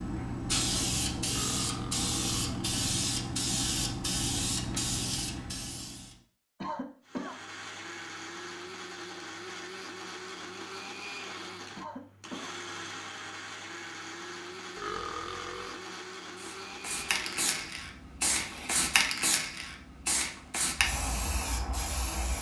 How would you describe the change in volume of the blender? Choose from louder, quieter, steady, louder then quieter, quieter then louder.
steady.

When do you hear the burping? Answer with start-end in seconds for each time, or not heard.
1.3-2.8, 14.8-15.8.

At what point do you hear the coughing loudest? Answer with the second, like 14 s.
7 s.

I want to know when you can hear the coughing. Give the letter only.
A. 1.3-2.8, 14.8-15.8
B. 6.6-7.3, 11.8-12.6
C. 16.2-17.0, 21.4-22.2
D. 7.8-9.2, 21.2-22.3
B.